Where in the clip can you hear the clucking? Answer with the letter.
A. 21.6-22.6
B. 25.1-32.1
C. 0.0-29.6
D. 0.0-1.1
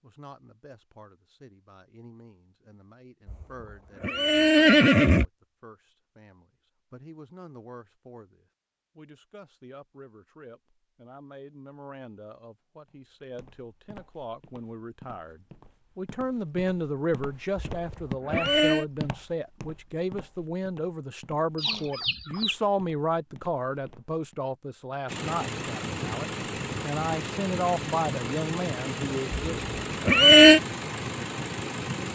A.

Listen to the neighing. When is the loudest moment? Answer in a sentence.
The volume of the neighing peaks at 30 seconds.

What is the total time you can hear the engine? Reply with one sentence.
The engine can be heard for 7 seconds in total.